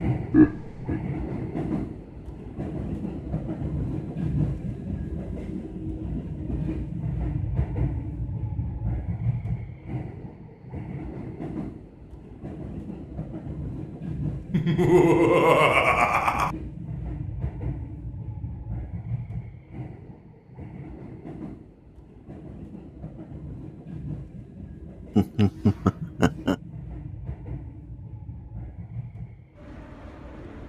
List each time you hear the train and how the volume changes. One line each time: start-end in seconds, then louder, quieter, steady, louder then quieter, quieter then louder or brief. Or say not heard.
0.0-30.6 quieter.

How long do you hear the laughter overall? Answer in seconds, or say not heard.
4 s.